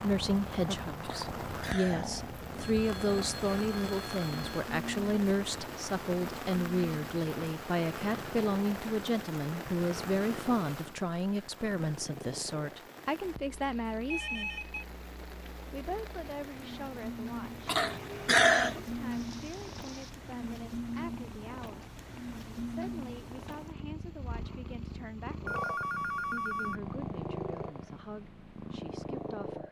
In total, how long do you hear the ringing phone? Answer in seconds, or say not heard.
4 s.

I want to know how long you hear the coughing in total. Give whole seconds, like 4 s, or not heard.
2 s.